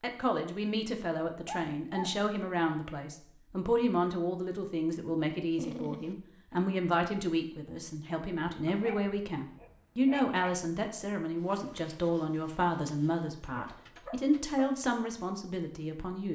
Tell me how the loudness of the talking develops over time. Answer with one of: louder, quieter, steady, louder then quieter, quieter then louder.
steady.